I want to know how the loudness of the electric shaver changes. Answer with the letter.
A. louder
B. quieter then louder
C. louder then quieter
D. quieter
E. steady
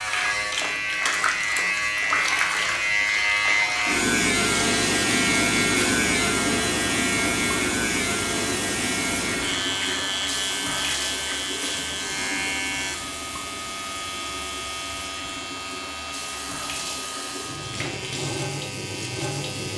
D.